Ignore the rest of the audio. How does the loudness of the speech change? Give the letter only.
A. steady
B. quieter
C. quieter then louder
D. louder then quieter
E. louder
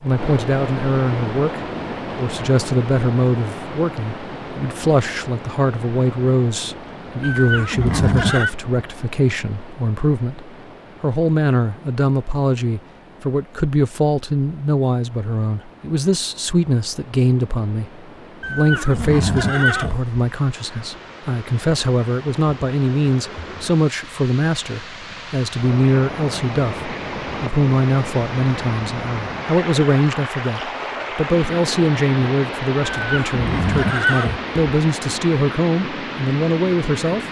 A.